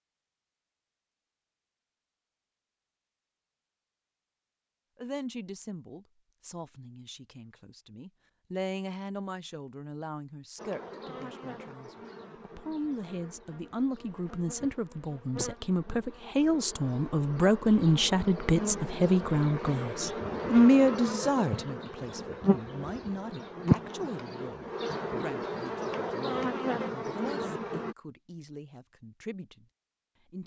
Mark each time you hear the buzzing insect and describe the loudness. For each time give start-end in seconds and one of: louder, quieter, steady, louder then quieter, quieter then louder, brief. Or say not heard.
10.6-27.9 louder.